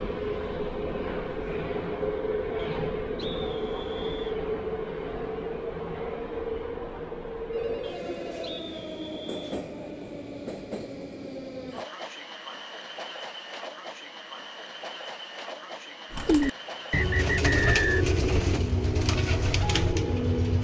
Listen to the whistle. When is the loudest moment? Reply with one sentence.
The volume of the whistle peaks at 18 seconds.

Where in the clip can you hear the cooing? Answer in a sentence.
The cooing can be heard from 16.1 to 20.5 s.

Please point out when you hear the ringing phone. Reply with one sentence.
You can hear the ringing phone from 7.5 to 8.6 s.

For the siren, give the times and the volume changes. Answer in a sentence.
The siren can't be heard in this clip.